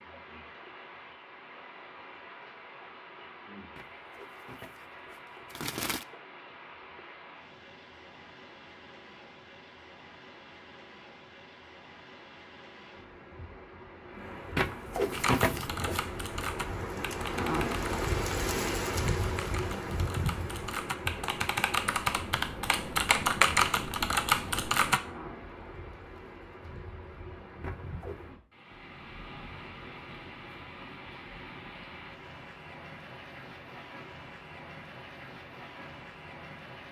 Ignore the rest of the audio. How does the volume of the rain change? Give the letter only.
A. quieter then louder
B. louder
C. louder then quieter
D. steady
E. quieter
C.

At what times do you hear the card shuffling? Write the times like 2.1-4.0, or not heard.
3.8-4.7, 5.5-6.0, 14.6-16.1, 27.6-28.2.